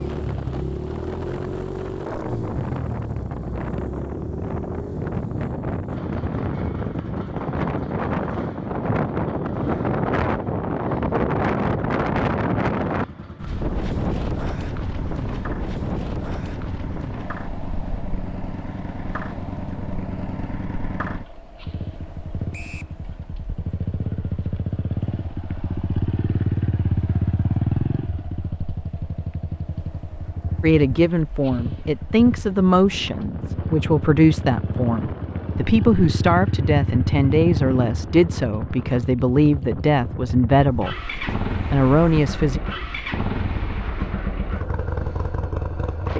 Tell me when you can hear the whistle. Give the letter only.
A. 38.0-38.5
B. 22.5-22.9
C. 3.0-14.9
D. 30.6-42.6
B.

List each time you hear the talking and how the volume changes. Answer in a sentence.
You can hear the talking from 30.6 to 42.6 s, at a steady volume.